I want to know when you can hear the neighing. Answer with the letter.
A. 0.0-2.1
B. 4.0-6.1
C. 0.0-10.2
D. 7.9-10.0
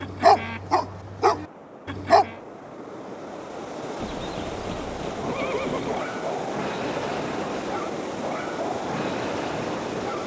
B.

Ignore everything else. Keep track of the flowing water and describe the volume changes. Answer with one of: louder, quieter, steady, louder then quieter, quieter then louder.
louder.